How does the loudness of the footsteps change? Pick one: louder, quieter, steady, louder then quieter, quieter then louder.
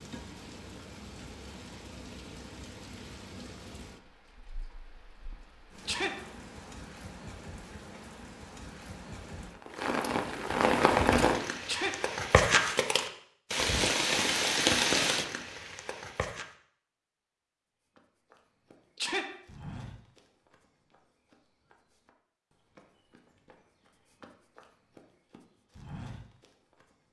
quieter then louder.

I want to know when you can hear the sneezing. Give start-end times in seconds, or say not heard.
5.8-6.2, 11.7-12.1, 18.9-19.4.